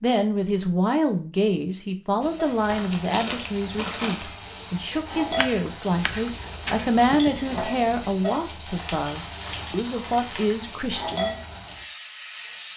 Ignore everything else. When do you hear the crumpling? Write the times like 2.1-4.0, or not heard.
2.6-4.3, 8.7-10.6.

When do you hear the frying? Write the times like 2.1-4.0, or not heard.
2.2-12.7.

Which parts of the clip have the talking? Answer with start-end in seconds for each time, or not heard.
0.0-11.4.